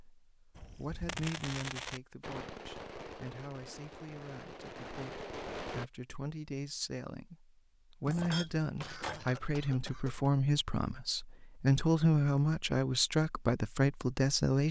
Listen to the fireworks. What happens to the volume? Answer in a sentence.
The volume of the fireworks goes down, then up.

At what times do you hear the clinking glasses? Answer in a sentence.
You can hear the clinking glasses from 8.1 to 9.4 s.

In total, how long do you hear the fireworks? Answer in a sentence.
You can hear the fireworks for 5 seconds altogether.